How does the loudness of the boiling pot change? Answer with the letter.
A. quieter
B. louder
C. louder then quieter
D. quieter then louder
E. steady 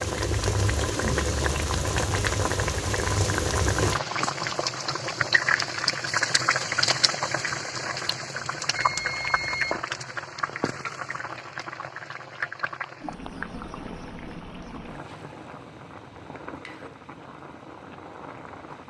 A.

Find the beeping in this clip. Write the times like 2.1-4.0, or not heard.
8.8-9.8.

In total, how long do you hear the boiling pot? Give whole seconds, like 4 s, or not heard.
19 s.